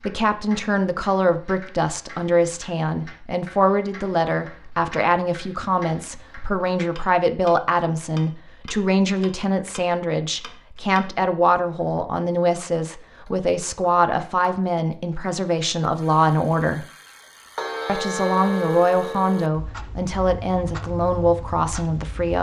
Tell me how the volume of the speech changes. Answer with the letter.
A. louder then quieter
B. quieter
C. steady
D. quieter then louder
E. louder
C.